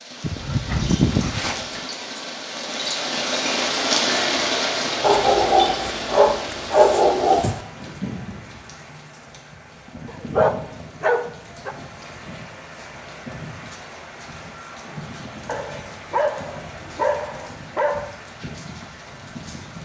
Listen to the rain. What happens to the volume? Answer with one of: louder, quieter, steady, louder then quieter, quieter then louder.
quieter.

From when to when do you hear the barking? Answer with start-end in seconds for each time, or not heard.
0.2-1.8, 5.0-7.6, 10.1-11.8, 15.4-18.1.